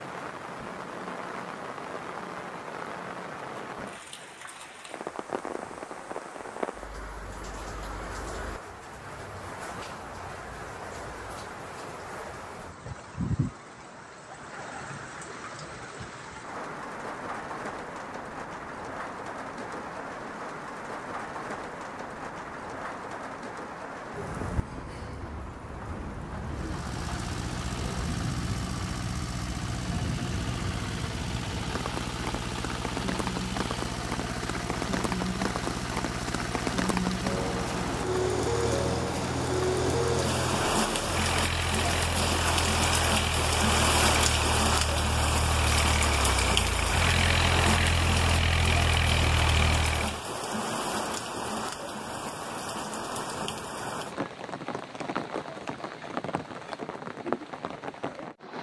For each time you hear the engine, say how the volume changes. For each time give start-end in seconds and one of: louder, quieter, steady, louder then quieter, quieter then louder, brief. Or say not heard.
26.4-50.2 louder.